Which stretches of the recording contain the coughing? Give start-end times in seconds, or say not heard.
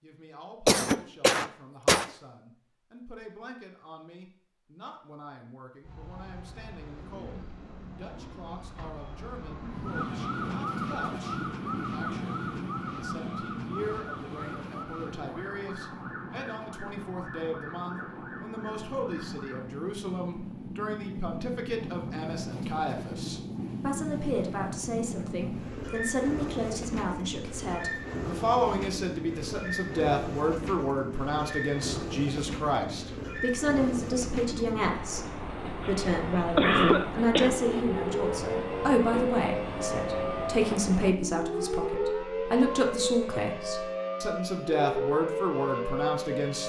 0.7-2.0, 35.8-37.8.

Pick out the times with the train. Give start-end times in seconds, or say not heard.
9.7-41.1.